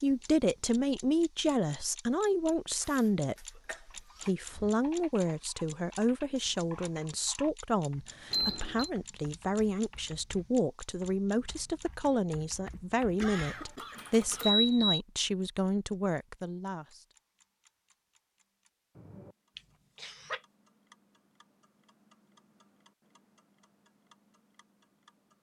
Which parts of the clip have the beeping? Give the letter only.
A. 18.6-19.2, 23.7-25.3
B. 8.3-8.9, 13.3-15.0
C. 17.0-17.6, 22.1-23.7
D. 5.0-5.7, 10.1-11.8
B.